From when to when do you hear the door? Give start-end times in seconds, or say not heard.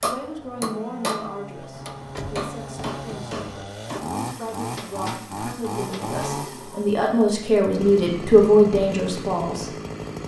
1.7-3.6, 5.7-7.0.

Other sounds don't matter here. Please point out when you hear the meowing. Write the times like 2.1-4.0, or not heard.
not heard.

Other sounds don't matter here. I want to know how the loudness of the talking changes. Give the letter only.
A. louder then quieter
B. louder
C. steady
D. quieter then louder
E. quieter
D.